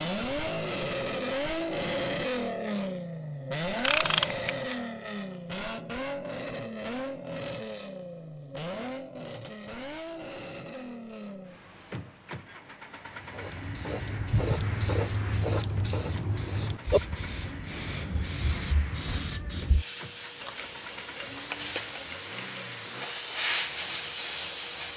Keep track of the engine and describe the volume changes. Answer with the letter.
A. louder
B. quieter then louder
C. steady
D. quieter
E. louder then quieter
D.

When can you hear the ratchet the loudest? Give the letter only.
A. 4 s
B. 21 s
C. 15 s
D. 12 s
A.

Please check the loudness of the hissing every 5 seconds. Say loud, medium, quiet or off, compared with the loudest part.
off, off, loud, loud, loud.